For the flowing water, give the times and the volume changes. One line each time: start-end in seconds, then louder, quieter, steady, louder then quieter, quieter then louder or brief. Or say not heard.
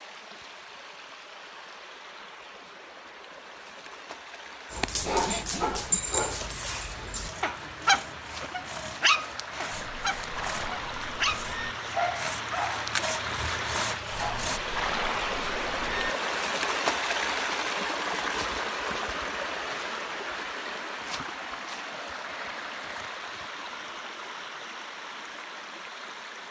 0.0-26.4 louder then quieter.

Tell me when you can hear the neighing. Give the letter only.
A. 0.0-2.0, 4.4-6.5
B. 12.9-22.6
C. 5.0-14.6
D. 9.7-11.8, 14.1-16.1
D.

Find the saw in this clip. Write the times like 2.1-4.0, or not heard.
5.0-14.6.